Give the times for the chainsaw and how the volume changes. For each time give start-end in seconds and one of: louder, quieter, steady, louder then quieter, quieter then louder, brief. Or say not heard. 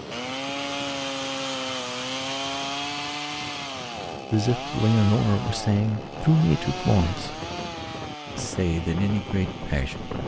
0.0-10.2 quieter.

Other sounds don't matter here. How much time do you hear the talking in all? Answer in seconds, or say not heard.
5 s.